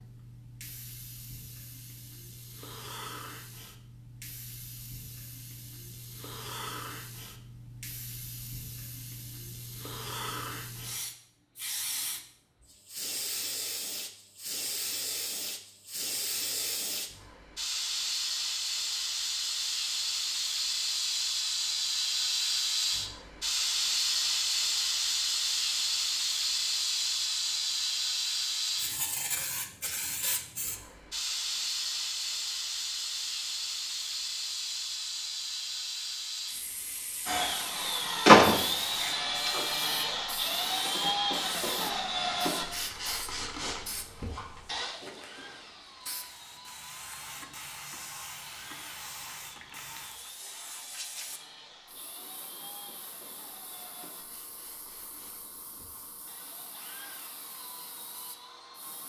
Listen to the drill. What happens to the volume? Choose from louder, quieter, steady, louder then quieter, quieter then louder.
quieter.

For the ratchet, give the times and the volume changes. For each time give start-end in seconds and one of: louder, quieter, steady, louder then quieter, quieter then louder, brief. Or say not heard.
not heard.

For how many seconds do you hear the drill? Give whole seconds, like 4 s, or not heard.
22 s.